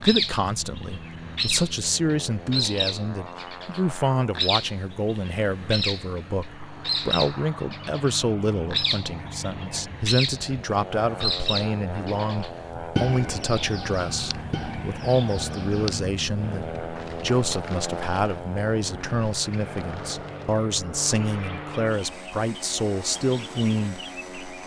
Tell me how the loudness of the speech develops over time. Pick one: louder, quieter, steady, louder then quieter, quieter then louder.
steady.